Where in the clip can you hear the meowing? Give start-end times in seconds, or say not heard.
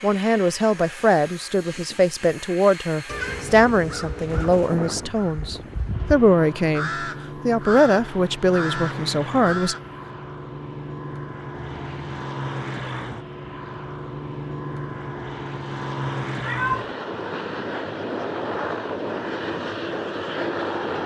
3.0-4.8, 11.6-12.2, 16.4-16.9.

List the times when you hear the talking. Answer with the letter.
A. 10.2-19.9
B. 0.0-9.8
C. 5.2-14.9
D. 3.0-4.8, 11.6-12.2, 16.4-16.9
B.